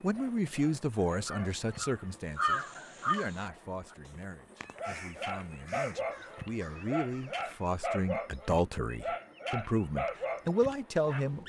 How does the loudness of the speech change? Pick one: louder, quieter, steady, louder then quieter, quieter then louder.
quieter then louder.